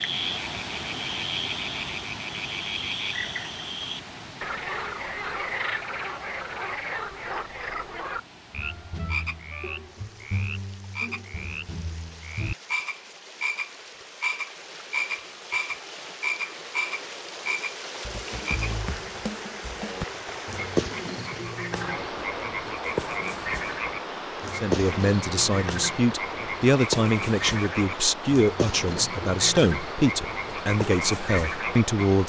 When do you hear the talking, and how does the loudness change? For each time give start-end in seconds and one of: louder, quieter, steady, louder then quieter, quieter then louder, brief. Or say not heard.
24.6-32.2 steady.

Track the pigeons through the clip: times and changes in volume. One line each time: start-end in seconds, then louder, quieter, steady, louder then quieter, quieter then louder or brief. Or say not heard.
not heard.